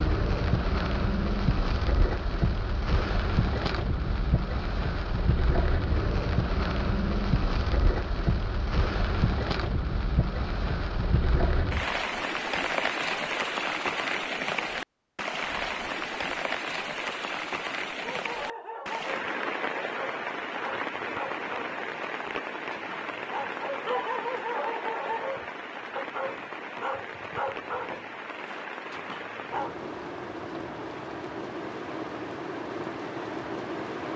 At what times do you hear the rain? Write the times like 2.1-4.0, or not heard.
0.0-34.1.